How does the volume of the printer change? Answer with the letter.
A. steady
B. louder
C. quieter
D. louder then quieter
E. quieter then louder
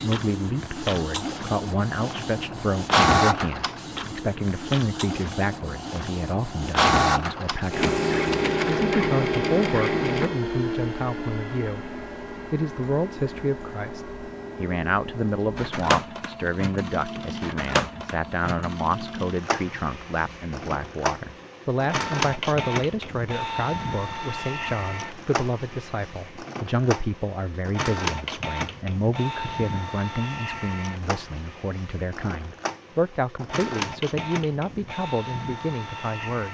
C.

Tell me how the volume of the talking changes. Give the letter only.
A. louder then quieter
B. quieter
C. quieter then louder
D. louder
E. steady
E.